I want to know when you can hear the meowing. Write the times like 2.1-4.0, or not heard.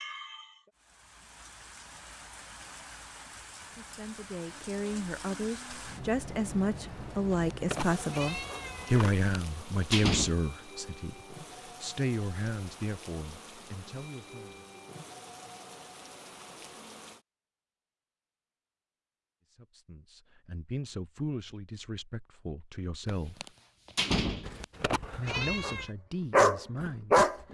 7.3-9.2, 24.4-25.9.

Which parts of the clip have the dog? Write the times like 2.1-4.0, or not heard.
26.3-27.4.